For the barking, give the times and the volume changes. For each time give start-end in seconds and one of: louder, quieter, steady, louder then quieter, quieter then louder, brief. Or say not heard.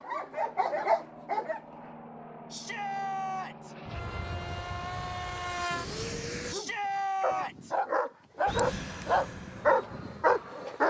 0.0-1.6 brief
6.5-10.8 louder.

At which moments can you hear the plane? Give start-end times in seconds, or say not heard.
0.0-6.5, 8.4-10.8.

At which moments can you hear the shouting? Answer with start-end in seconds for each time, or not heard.
2.5-3.8, 6.5-7.8.